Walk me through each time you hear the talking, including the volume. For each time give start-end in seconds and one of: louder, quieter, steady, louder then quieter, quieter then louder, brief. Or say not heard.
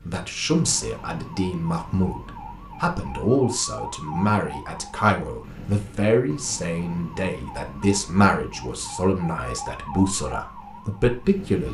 0.1-11.6 steady.